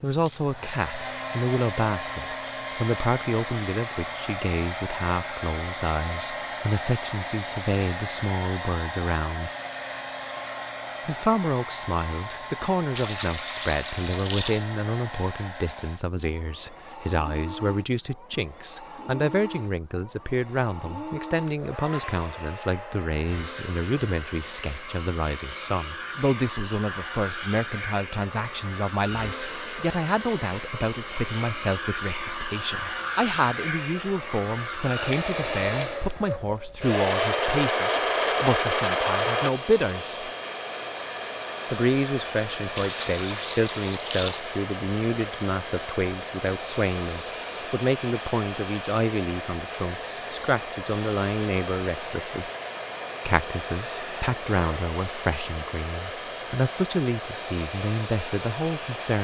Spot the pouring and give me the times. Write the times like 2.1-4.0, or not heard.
12.9-14.7, 42.8-44.5.